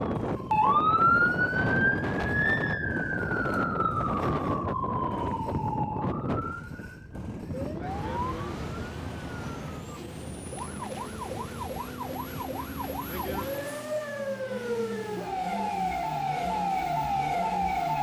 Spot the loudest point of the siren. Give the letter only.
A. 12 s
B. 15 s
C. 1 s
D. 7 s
C.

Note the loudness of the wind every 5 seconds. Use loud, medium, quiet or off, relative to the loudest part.
loud, medium, quiet, off.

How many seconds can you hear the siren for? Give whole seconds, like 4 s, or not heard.
18 s.